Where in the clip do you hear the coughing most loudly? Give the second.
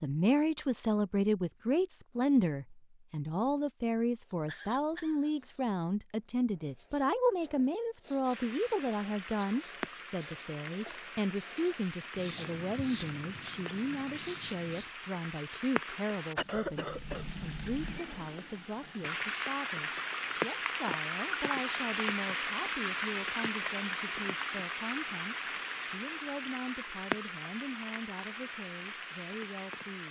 17 s.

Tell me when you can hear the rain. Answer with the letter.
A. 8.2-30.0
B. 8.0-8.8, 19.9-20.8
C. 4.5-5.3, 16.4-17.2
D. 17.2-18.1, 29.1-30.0
A.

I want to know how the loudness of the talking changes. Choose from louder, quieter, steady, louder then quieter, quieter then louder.
quieter.